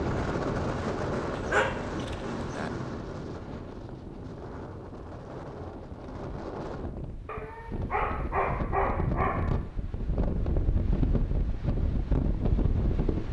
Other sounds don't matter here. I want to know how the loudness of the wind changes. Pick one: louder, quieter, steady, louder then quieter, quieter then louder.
quieter then louder.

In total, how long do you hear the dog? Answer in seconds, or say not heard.
4 s.